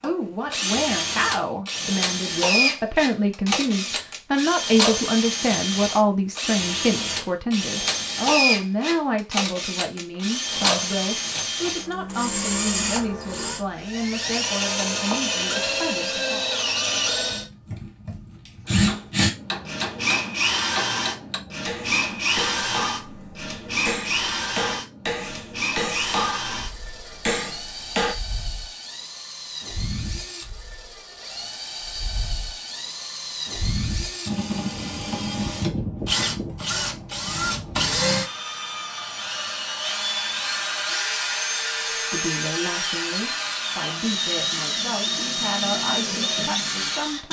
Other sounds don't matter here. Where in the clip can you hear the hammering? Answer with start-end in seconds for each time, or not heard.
18.6-28.1.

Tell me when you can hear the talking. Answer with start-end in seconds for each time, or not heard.
0.0-16.4, 41.9-47.2.